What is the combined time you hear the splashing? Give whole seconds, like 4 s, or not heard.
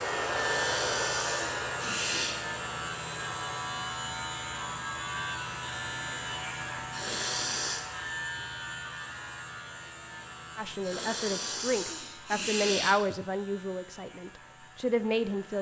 not heard.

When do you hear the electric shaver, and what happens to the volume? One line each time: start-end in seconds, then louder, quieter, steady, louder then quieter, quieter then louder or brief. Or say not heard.
0.0-15.5 quieter.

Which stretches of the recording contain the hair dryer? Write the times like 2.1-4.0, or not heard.
0.0-3.6.